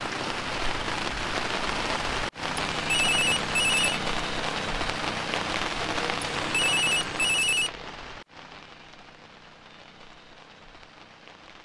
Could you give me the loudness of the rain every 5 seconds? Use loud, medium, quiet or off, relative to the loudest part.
loud, loud, quiet.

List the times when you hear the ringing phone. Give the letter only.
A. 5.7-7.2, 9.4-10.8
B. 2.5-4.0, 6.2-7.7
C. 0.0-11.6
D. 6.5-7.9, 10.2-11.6
B.